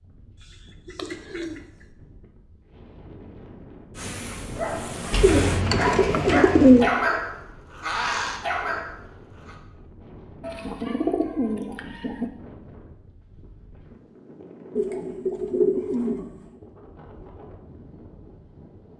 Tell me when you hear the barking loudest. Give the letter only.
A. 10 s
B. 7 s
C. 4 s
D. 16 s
B.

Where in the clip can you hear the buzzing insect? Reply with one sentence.
The buzzing insect can be heard from 4.0 to 5.7 s.